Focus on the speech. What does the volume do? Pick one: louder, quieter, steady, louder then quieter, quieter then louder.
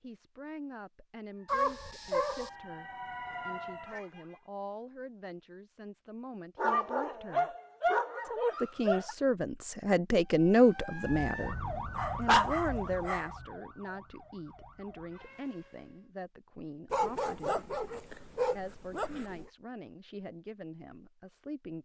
louder then quieter.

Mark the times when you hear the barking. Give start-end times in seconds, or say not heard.
1.4-2.5, 6.5-9.2, 11.9-13.3, 16.9-19.5.